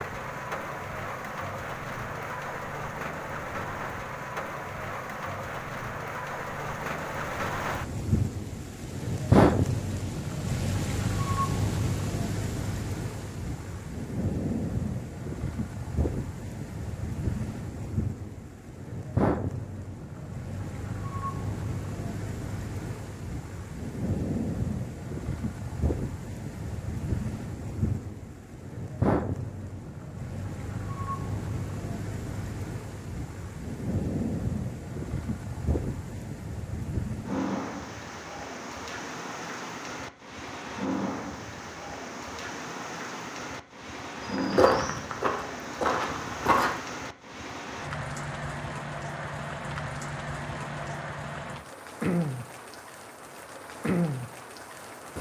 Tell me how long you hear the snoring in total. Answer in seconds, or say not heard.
not heard.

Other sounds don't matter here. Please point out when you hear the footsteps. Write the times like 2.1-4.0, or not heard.
44.3-46.8.